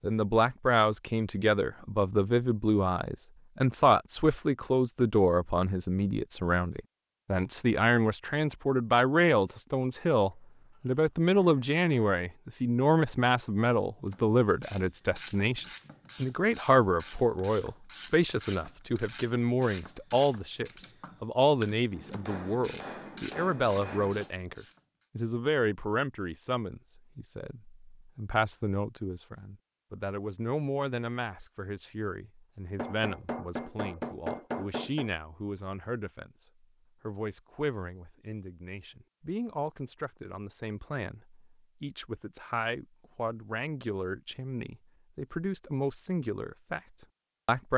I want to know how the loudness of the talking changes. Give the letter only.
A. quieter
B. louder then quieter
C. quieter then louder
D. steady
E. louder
A.